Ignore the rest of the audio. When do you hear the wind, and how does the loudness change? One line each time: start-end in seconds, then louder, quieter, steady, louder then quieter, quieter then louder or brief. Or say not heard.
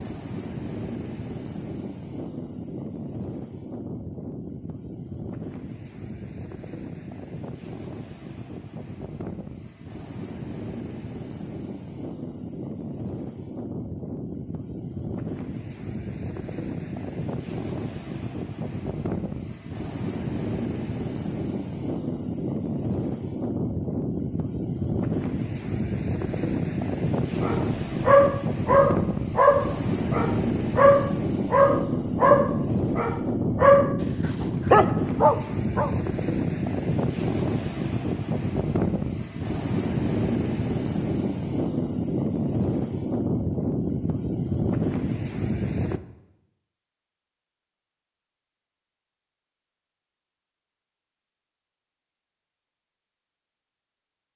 0.0-46.0 louder.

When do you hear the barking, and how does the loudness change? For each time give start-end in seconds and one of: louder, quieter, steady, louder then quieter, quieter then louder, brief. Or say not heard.
27.4-35.9 steady.